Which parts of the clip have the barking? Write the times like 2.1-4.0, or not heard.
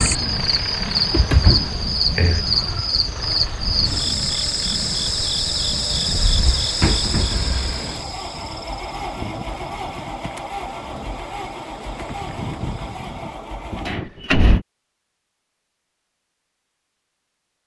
not heard.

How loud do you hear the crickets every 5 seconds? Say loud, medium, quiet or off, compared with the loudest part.
loud, loud, quiet, off.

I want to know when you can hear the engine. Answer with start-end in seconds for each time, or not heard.
0.0-14.0.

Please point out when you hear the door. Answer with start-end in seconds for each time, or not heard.
0.9-2.5, 6.2-7.6, 13.8-14.7.